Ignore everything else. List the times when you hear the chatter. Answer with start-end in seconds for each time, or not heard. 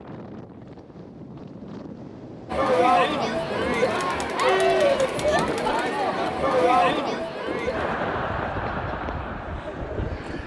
2.5-10.4.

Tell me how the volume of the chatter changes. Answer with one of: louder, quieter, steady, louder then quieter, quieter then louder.
quieter.